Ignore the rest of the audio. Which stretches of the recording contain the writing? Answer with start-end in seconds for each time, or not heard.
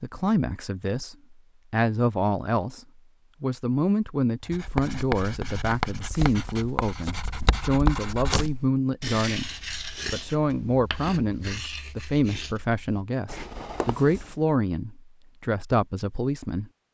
4.5-14.3.